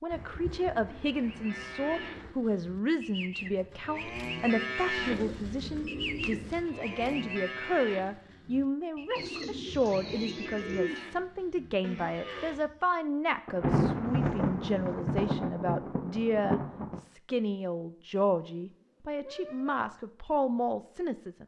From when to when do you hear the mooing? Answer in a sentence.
You can hear the mooing from 1.1 to 12.9 s.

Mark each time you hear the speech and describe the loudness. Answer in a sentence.
You can hear the speech from 0.0 to 21.4 s, at a steady volume.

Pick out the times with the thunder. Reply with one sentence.
You can hear the thunder from 13.4 to 17.0 s.